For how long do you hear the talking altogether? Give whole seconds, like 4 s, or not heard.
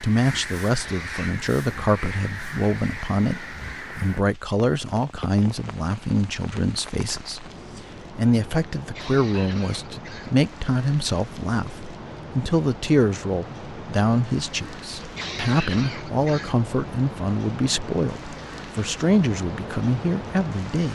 21 s.